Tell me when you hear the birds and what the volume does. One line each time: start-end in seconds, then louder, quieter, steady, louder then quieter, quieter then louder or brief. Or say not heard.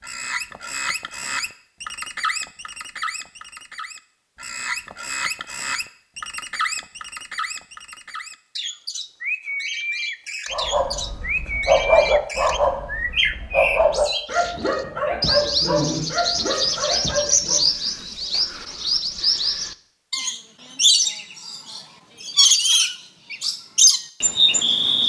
0.0-25.0 louder.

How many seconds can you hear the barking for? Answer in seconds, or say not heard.
7 s.